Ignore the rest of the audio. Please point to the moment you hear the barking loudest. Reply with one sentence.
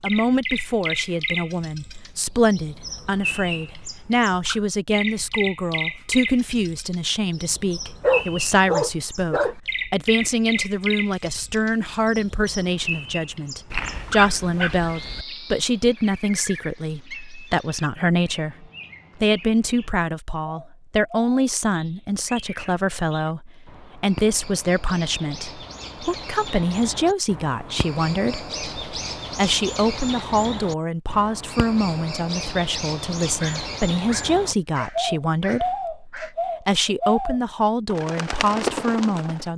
The loudest moment of the barking is at 8 seconds.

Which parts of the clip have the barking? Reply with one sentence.
The barking can be heard from 8.0 to 9.6 s, from 13.7 to 15.2 s and from 33.4 to 36.4 s.